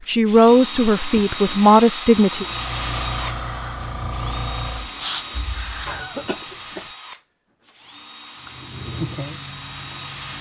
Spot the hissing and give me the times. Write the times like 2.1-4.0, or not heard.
2.4-6.1, 8.4-10.3.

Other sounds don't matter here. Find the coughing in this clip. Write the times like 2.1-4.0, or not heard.
5.8-6.9.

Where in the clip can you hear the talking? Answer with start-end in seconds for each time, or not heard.
0.1-2.5.